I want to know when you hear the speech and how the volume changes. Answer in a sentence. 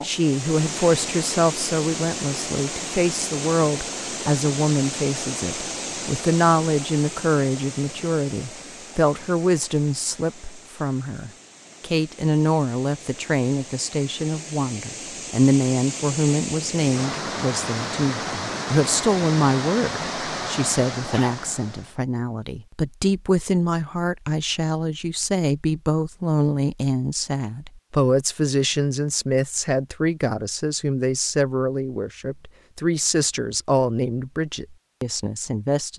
You can hear the speech from 0.0 to 35.9 s, at a steady volume.